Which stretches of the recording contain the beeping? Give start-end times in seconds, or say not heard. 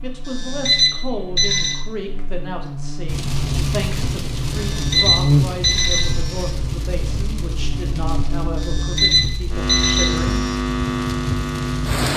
0.2-1.8, 4.5-6.5, 8.6-10.6.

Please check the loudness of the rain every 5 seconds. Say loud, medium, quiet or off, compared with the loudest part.
loud, medium, loud.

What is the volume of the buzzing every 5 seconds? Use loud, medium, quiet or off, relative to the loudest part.
medium, loud, loud.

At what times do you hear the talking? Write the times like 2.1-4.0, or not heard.
0.0-10.5.